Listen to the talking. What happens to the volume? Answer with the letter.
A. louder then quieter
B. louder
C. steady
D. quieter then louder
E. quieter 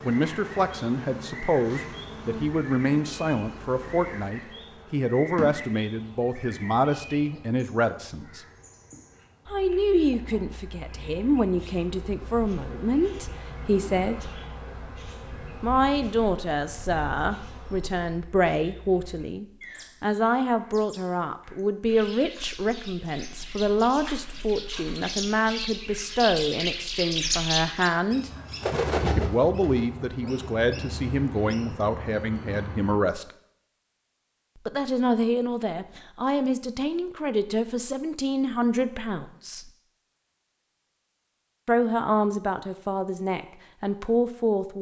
C.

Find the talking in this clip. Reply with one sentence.
The talking can be heard from 0.0 to 8.4 s, from 9.5 to 14.2 s, from 15.6 to 28.3 s, from 29.0 to 33.2 s, from 34.6 to 39.7 s and from 41.6 to 44.7 s.